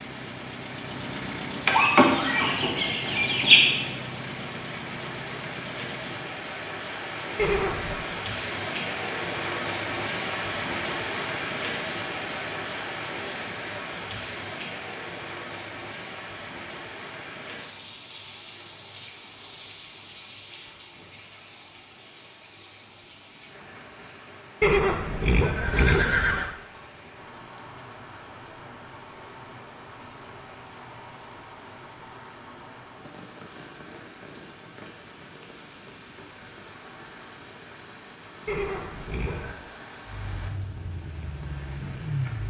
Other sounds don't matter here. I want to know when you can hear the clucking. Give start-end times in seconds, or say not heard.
1.6-3.6.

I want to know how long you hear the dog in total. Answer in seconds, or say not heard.
not heard.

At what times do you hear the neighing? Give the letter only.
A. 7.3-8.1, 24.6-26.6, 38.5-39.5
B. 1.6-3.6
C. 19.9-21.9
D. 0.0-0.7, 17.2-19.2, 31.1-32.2
A.